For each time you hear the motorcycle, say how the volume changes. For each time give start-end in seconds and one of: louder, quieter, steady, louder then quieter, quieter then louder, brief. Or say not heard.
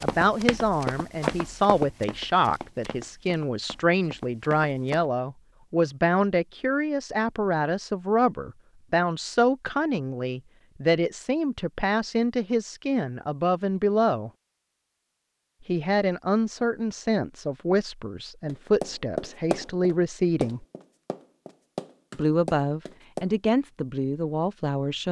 not heard.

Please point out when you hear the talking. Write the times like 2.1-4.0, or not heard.
0.0-14.3, 15.7-20.6, 22.1-25.0.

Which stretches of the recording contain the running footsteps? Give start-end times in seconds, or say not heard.
0.0-5.0, 18.4-23.3.